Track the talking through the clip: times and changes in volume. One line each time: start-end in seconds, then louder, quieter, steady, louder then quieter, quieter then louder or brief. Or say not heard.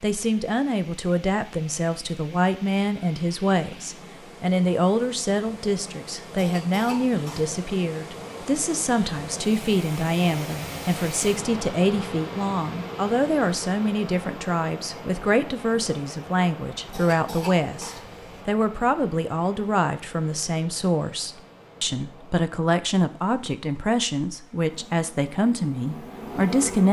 0.0-26.8 steady.